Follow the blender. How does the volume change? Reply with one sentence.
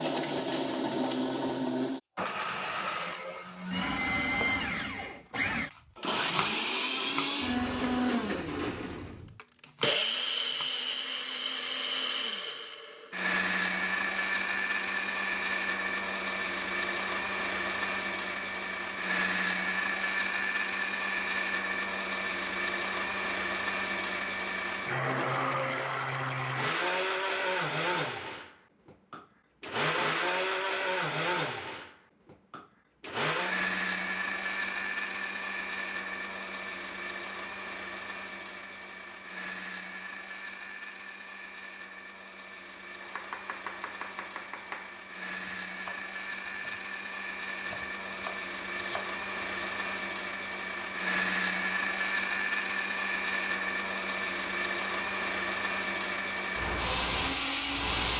The loudness of the blender goes down, then up.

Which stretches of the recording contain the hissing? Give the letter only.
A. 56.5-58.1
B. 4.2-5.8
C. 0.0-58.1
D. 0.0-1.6
A.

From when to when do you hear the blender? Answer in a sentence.
You can hear the blender from 0.0 to 58.1 s.